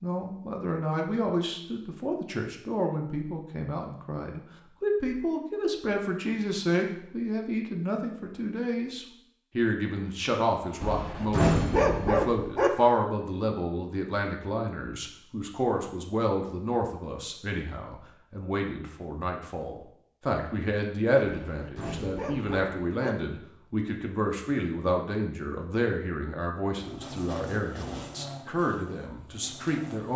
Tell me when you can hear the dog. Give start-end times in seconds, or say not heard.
10.8-12.7, 21.3-23.1.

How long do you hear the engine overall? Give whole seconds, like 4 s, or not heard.
3 s.